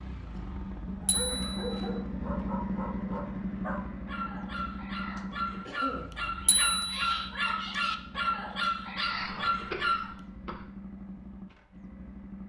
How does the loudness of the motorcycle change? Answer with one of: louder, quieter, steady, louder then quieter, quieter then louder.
quieter.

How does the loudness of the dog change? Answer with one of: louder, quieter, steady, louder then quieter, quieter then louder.
louder.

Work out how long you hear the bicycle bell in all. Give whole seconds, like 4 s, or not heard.
2 s.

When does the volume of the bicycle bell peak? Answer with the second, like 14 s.
7 s.